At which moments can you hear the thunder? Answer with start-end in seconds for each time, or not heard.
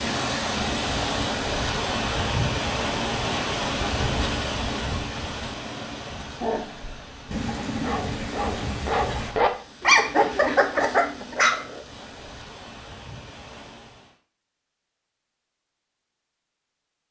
7.3-9.3.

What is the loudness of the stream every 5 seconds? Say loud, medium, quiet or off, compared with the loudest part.
loud, medium, quiet, off.